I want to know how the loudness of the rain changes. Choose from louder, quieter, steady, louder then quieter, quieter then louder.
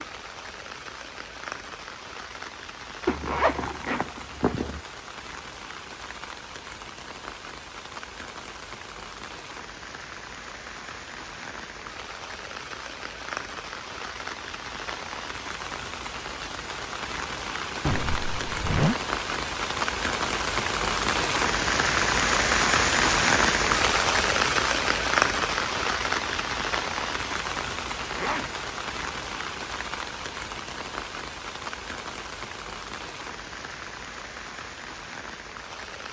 louder then quieter.